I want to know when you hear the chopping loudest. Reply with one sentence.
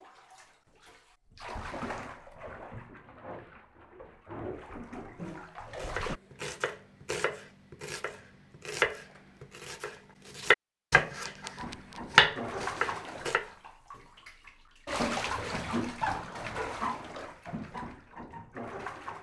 The volume of the chopping peaks at 12 seconds.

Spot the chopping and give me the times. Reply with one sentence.
The chopping can be heard from 5.8 to 13.5 s.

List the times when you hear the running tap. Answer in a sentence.
You can hear the running tap from 0.0 to 6.2 s and from 11.6 to 19.1 s.